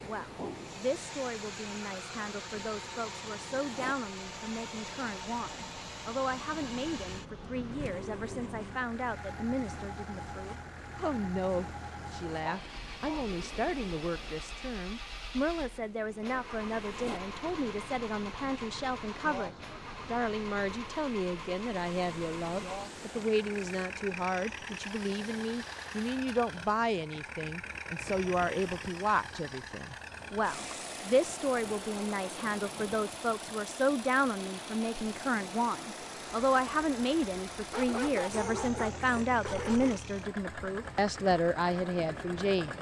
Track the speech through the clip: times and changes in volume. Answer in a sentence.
You can hear the speech from 0.0 to 42.7 s, getting louder.